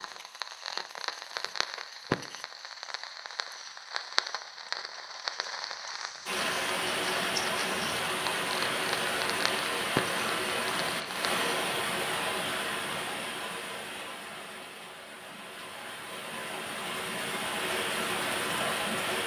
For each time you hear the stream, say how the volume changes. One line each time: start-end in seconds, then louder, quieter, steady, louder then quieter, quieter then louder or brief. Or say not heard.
6.2-19.2 quieter then louder.